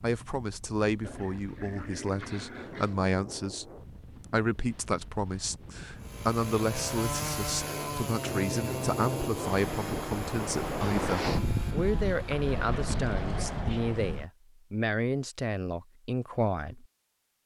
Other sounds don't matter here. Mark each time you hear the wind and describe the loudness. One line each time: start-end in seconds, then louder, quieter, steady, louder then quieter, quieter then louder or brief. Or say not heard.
0.0-14.2 louder.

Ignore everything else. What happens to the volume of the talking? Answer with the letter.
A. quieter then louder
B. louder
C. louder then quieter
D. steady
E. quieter
D.